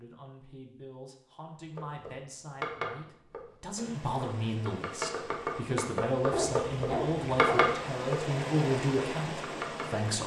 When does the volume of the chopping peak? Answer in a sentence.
The volume of the chopping peaks at 8 seconds.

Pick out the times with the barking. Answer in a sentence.
The barking can be heard from 6.3 to 7.8 s.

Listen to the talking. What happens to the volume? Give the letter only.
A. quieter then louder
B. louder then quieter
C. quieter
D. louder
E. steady
D.